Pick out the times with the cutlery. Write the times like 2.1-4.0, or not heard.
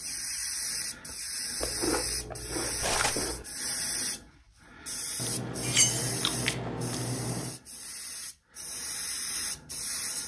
2.8-3.2, 5.6-6.1.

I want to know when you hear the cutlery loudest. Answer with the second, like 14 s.
6 s.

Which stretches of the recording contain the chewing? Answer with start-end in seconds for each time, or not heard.
1.6-3.5, 5.2-7.5.